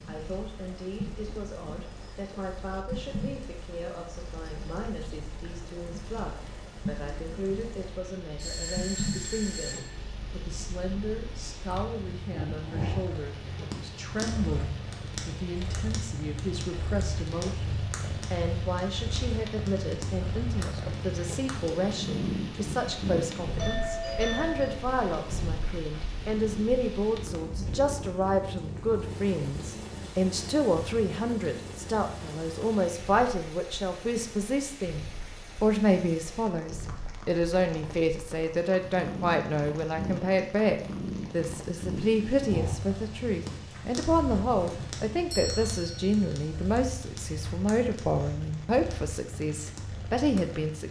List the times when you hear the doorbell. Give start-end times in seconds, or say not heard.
8.3-9.9, 23.6-24.8, 44.5-46.4.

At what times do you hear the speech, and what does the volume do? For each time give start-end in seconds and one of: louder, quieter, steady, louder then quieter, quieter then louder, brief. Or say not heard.
0.1-50.8 louder.